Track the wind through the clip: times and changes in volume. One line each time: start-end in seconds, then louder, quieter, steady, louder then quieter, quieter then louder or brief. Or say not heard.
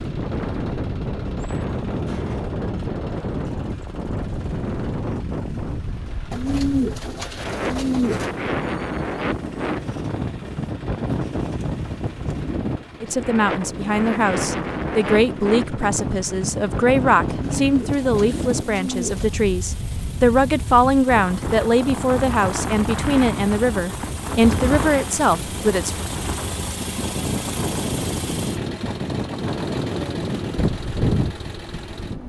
0.0-32.2 steady.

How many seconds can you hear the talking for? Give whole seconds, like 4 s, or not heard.
13 s.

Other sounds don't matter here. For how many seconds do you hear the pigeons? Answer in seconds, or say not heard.
4 s.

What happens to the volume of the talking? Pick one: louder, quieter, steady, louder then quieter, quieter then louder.
steady.